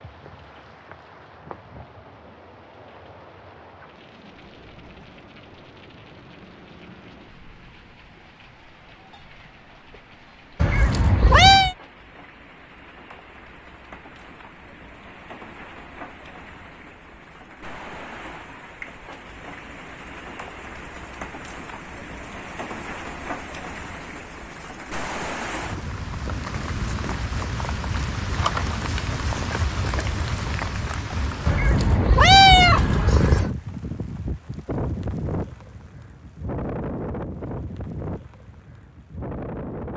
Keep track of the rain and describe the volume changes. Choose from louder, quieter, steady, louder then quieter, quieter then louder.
louder.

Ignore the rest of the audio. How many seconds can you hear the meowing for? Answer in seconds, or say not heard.
3 s.